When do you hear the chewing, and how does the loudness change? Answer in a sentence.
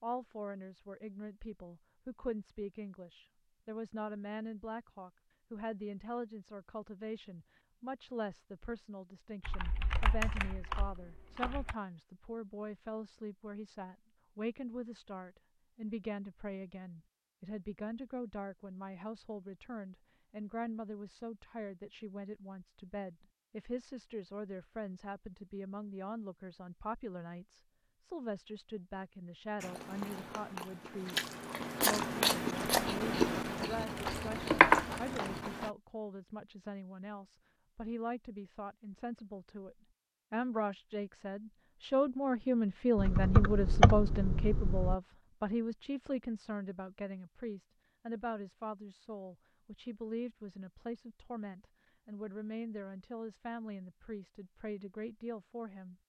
You can hear the chewing from 29.6 to 35.7 s, getting louder.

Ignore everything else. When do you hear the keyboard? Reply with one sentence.
The keyboard can be heard from 9.4 to 11.8 s, from 33.8 to 35.5 s and from 43.0 to 45.0 s.